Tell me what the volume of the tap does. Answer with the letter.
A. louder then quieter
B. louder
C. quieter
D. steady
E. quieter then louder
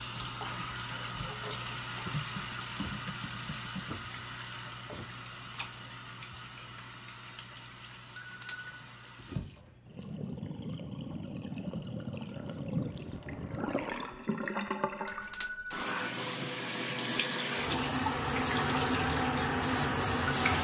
E.